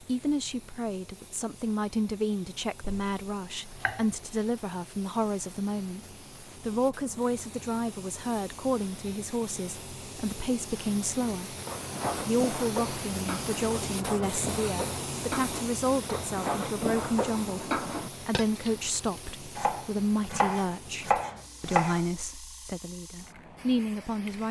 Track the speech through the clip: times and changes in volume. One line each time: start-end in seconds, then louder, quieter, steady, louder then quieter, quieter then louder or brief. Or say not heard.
0.1-11.6 steady
12.2-24.4 steady.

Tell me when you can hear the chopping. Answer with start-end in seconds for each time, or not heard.
2.8-4.0, 19.6-22.1.